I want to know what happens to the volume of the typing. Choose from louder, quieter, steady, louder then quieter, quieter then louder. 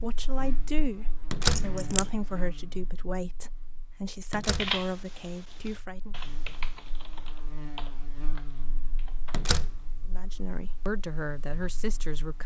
louder then quieter.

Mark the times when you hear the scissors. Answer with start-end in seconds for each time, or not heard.
1.4-2.1.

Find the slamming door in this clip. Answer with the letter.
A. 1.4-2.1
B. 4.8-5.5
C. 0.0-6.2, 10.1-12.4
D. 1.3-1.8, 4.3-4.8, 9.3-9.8
D.